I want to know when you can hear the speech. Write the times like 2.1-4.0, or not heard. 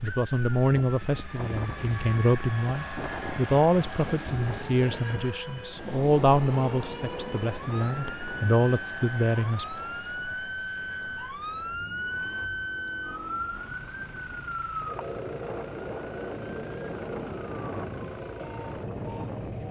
0.0-9.7.